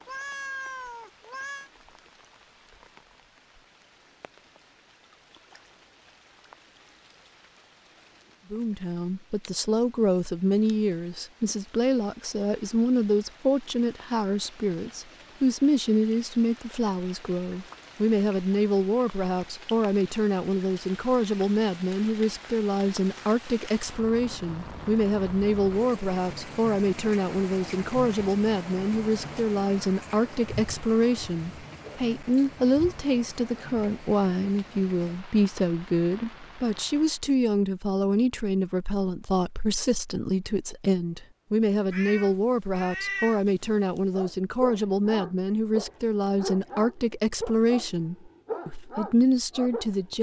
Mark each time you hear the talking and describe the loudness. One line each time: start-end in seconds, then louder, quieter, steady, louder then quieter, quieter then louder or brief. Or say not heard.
8.5-50.1 steady.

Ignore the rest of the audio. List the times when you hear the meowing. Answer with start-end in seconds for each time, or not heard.
0.1-1.7, 41.9-43.5.